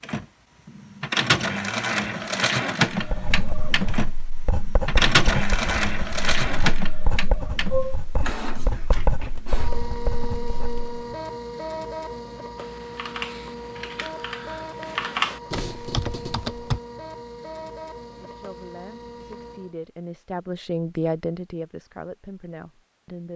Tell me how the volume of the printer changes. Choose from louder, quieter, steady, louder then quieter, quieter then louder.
quieter.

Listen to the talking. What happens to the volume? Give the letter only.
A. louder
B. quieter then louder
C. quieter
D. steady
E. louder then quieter
E.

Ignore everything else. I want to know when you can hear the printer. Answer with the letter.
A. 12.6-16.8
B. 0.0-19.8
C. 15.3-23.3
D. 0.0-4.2
B.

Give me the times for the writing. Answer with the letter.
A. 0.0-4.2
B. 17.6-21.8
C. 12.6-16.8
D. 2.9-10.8
D.